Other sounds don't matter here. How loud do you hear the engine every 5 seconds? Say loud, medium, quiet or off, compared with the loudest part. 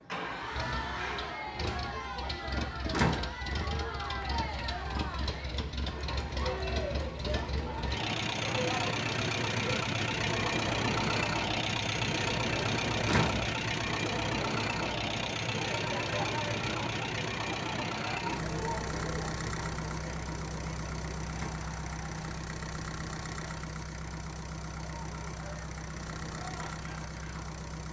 medium, loud, loud, loud, medium, medium.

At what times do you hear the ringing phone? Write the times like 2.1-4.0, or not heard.
not heard.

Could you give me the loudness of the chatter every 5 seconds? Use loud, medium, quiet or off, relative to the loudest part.
loud, loud, loud, loud, medium, medium.